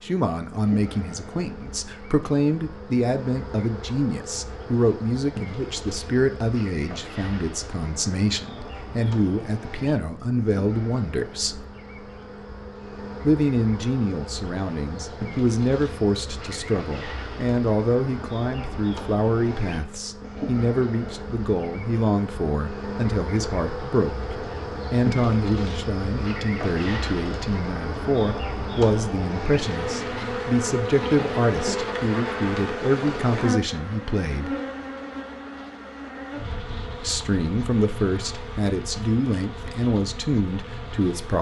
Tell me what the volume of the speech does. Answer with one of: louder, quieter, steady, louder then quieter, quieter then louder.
steady.